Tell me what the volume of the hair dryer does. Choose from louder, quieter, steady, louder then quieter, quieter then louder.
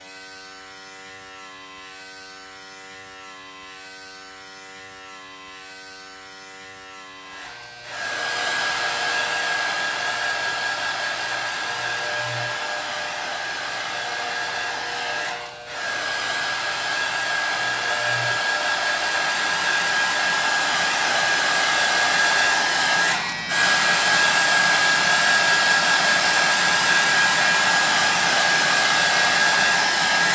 louder.